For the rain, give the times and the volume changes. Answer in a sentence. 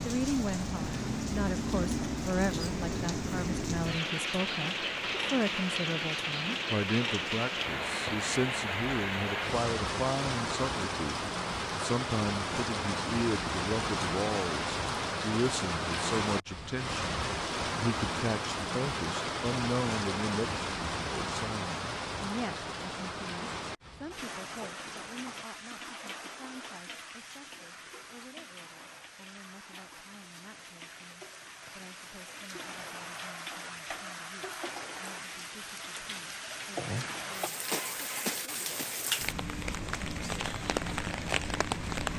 You can hear the rain from 0.0 to 42.1 s, getting quieter then louder.